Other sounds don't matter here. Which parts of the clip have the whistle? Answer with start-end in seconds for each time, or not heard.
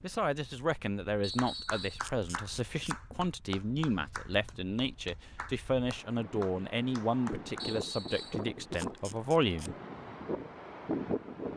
1.2-2.0, 7.5-8.4.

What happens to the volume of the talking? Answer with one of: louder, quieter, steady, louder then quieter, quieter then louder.
steady.